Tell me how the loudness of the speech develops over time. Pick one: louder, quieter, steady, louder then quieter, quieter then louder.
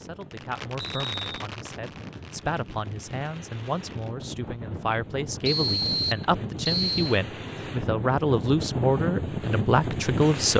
louder.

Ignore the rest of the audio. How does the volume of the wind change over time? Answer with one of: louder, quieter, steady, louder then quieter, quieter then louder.
louder.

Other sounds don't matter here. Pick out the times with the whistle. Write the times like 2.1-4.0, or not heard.
0.8-1.2, 5.5-7.2.